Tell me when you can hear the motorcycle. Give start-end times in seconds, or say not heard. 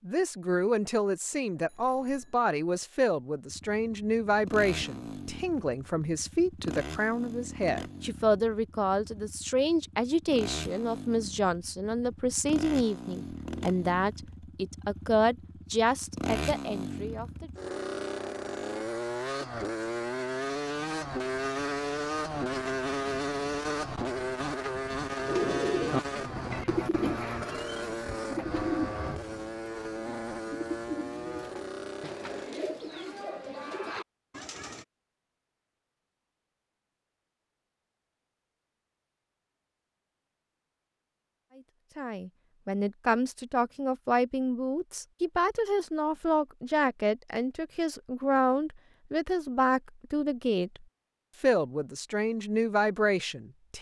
3.5-32.5.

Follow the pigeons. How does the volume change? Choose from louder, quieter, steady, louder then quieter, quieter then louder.
quieter.